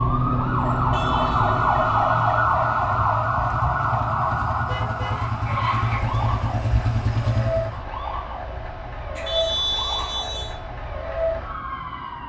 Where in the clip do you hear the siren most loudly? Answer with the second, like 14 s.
2 s.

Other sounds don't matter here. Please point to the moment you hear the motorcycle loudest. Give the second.
7 s.